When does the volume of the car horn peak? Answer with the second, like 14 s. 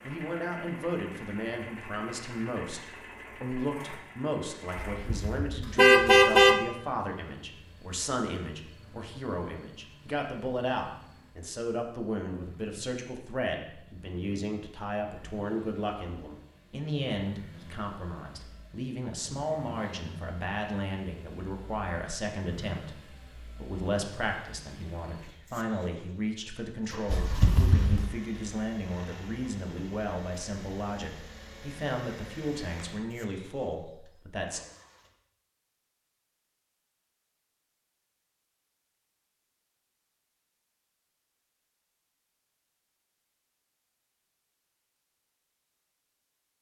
6 s.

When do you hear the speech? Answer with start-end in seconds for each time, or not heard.
0.0-34.6.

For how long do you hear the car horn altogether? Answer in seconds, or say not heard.
3 s.